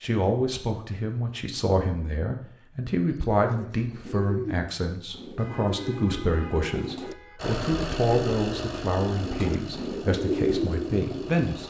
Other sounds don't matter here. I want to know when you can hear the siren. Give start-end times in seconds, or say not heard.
not heard.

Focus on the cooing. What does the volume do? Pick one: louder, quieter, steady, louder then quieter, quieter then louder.
louder.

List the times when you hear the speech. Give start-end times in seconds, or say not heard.
0.0-11.6.